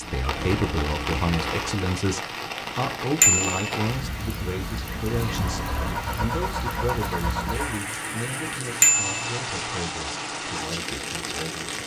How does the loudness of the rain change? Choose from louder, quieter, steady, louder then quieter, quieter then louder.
steady.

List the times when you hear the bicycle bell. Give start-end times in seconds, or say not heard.
3.2-3.8, 8.8-9.3.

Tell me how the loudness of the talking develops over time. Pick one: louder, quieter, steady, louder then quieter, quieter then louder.
quieter.